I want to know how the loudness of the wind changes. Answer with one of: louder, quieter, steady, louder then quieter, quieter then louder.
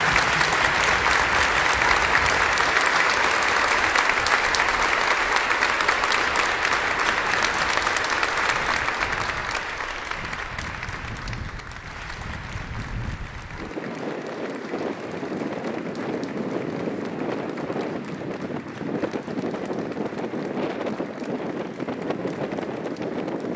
louder.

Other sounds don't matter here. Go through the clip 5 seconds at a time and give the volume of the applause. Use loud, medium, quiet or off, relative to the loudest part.
loud, loud, quiet, quiet, quiet.